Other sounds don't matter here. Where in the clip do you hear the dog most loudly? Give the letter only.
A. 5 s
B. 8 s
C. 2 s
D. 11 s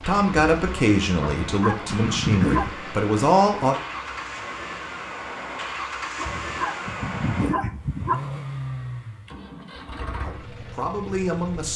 C.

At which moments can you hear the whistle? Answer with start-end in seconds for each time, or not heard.
not heard.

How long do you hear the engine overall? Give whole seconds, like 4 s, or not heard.
12 s.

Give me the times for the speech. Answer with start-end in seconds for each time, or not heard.
0.1-3.8, 10.2-11.7.